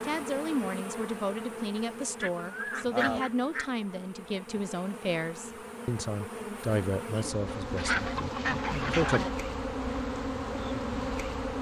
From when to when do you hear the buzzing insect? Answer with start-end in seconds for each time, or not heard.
0.0-11.5.